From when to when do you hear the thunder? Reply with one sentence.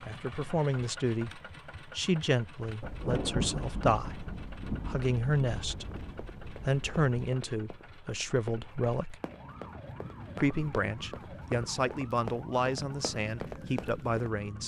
The thunder can be heard from 2.8 to 7.2 s.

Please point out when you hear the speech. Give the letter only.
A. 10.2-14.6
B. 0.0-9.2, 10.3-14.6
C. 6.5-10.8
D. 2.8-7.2
B.